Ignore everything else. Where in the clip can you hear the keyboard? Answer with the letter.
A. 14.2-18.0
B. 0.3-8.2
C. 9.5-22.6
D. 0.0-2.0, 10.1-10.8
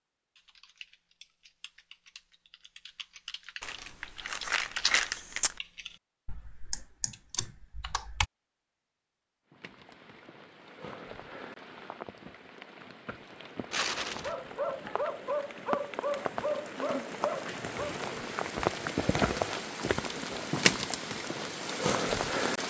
B.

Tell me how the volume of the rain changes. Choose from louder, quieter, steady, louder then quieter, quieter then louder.
louder.